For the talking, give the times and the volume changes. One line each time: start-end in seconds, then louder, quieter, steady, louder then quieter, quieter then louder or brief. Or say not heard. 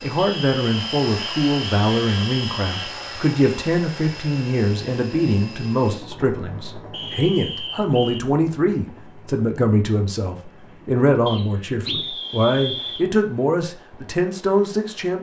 0.0-15.1 steady.